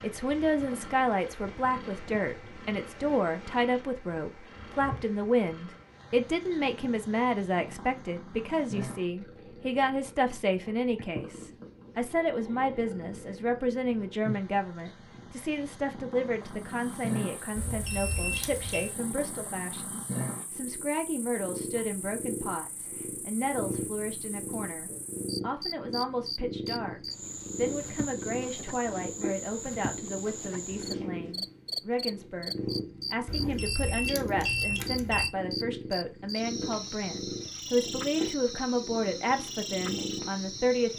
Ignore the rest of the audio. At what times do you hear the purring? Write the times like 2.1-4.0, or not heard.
0.0-40.9.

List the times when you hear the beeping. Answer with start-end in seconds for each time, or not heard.
17.6-18.9, 33.2-35.3.